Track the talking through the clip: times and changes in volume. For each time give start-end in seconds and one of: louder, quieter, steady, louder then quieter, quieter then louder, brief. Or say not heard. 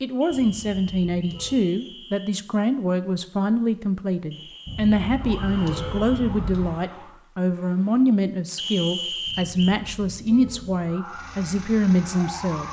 0.0-12.6 steady.